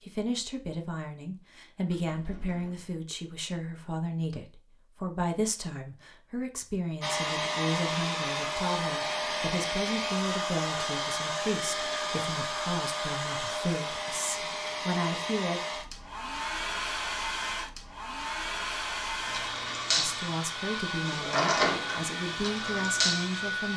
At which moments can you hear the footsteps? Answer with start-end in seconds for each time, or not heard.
not heard.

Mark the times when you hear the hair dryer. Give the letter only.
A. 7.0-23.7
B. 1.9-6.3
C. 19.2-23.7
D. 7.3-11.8
A.